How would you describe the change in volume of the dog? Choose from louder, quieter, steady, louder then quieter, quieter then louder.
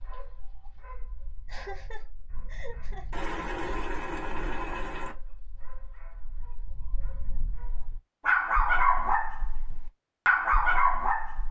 louder.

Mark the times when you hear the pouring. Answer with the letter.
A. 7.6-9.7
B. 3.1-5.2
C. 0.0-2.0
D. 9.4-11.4
B.